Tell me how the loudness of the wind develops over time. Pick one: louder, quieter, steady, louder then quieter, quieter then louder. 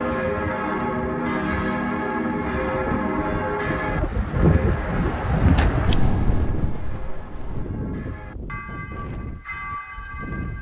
louder then quieter.